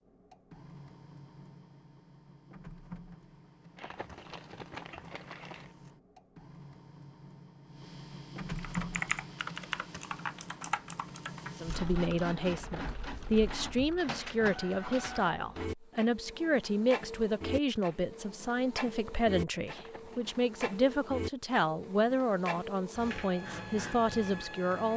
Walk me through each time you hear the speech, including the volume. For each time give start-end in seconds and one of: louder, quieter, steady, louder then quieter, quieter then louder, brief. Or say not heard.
11.6-24.9 steady.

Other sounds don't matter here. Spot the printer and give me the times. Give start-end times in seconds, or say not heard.
0.0-24.9.